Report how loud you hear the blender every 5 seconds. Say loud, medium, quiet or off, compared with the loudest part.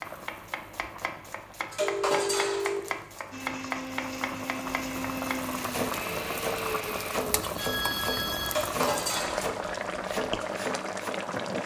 loud, loud, off.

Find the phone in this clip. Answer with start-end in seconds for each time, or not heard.
1.8-2.8, 7.2-8.6.